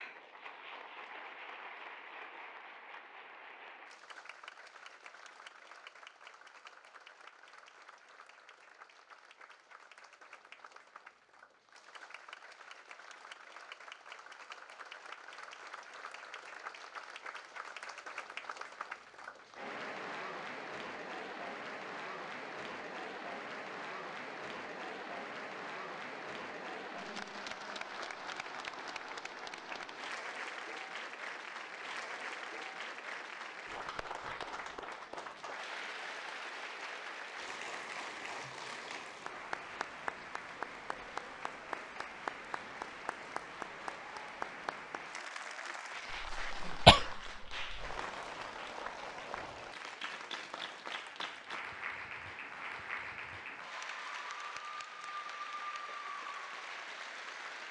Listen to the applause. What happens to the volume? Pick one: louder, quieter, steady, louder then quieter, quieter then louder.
louder.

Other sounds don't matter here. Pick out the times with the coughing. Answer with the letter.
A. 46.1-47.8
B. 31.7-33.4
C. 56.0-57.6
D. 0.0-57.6
A.